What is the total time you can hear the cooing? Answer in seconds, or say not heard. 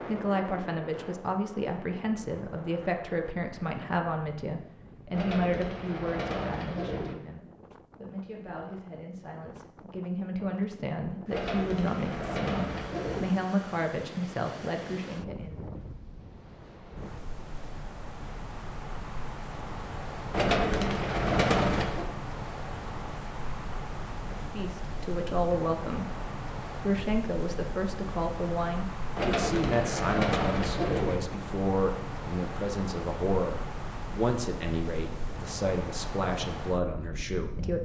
8 s.